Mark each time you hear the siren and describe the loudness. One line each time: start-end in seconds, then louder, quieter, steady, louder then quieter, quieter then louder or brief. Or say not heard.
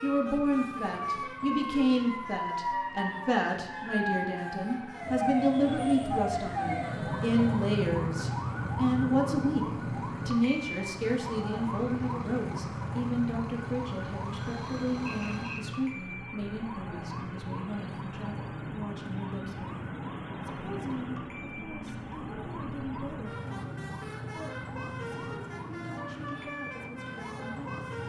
0.0-28.0 quieter.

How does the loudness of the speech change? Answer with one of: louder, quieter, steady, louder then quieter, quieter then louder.
quieter.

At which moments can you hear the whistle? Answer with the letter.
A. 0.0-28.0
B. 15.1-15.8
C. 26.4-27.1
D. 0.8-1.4
B.